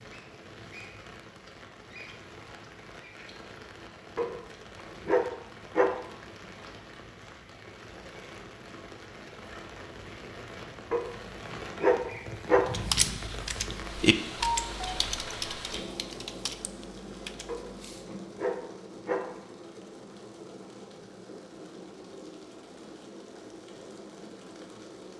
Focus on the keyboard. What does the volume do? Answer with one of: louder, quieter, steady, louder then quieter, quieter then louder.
louder then quieter.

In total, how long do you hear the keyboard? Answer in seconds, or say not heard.
5 s.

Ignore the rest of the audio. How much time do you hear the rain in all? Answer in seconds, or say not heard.
25 s.